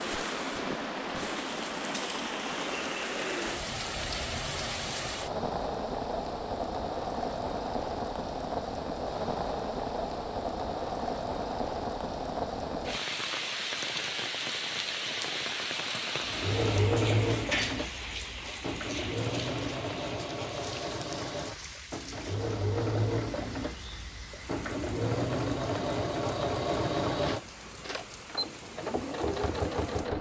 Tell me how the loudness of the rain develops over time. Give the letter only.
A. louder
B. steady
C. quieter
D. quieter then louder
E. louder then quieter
C.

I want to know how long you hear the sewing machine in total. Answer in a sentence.
The sewing machine can be heard for 14 seconds in total.